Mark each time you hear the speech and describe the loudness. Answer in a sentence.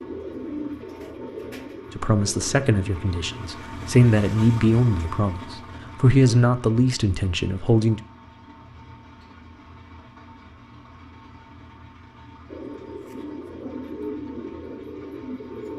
You can hear the speech from 1.9 to 8.0 s, getting louder then quieter.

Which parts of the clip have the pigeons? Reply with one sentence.
The pigeons can be heard from 0.0 to 3.6 s and from 12.4 to 15.7 s.